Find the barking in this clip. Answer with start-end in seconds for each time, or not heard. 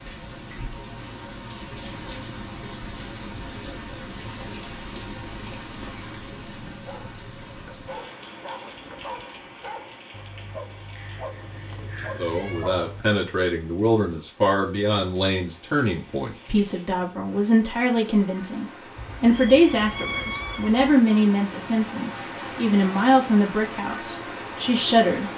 6.7-13.1.